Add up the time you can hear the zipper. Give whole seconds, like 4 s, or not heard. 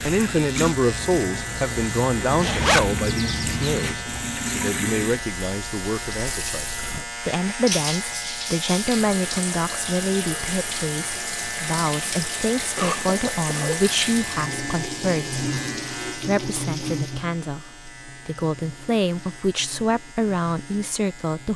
2 s.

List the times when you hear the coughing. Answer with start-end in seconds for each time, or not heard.
12.8-13.9.